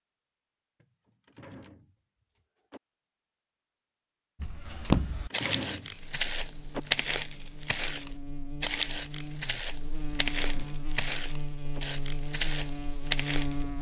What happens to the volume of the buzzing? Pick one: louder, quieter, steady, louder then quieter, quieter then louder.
louder.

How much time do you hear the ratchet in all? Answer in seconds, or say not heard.
not heard.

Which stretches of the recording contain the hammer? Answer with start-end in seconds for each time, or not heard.
not heard.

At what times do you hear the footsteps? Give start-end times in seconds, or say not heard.
4.4-13.6.